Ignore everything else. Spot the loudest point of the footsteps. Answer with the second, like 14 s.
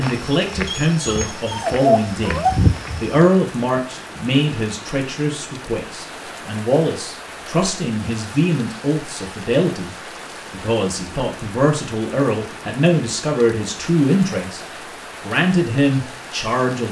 3 s.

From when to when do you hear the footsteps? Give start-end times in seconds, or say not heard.
0.0-3.2.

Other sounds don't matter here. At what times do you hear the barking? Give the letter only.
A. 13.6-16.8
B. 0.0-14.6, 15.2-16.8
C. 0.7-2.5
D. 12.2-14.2
C.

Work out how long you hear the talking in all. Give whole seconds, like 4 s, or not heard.
16 s.